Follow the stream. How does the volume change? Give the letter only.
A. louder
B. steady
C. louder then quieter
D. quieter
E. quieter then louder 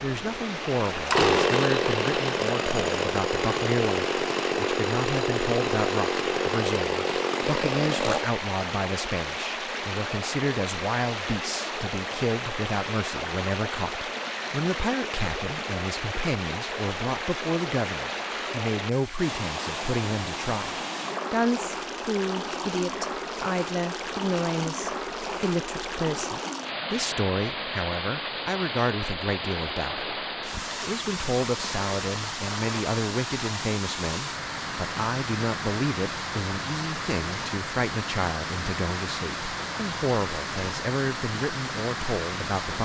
B.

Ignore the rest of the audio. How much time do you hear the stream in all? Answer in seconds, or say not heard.
43 s.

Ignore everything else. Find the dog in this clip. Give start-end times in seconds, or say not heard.
not heard.